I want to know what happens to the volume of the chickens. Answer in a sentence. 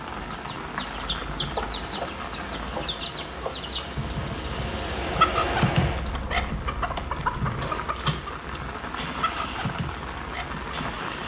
The volume of the chickens goes up, then down.